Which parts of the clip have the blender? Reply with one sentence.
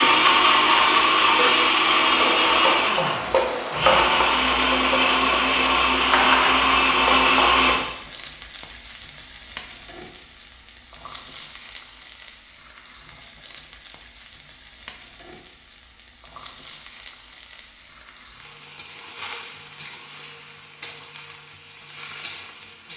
The blender can be heard from 0.0 to 7.8 s.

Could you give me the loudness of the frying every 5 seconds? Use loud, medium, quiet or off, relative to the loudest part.
loud, loud, quiet, quiet, quiet.